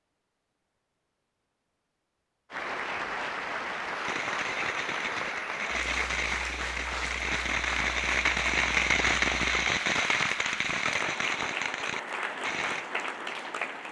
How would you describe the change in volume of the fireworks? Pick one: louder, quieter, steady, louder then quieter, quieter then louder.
louder then quieter.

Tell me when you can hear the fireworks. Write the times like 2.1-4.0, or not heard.
4.0-12.8.